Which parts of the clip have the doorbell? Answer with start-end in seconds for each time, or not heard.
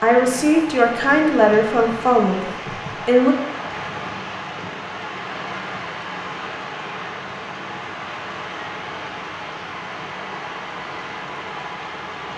not heard.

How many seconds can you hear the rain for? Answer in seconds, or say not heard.
12 s.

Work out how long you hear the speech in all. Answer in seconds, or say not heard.
3 s.